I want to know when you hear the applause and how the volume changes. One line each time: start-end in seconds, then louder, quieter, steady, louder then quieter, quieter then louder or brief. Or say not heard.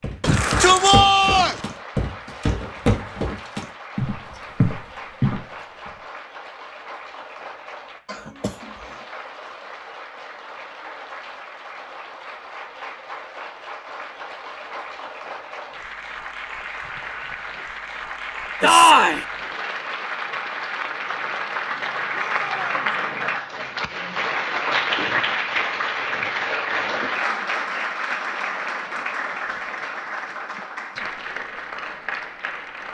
0.0-32.8 louder.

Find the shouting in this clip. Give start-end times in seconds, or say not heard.
0.2-1.6, 18.6-19.2, 22.1-22.8.